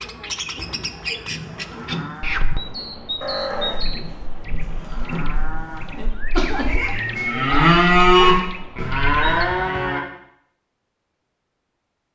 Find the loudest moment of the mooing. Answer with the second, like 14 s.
8 s.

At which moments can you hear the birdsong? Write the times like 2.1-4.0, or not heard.
0.0-9.4.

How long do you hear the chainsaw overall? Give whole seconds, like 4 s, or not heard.
not heard.